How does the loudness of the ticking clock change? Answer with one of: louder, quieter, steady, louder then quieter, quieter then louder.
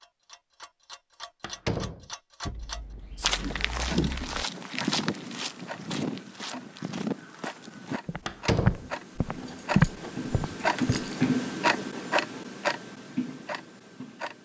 louder.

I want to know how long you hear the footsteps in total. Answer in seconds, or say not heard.
8 s.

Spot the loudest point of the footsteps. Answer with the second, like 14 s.
10 s.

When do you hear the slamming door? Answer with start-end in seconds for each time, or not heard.
1.4-2.0, 8.2-8.9.